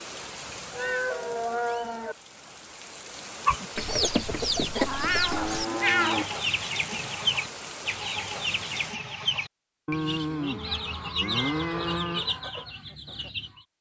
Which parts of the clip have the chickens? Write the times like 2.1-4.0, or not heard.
3.5-13.7.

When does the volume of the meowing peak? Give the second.
6 s.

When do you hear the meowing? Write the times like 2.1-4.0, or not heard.
0.4-2.1, 4.8-6.3, 11.1-11.8.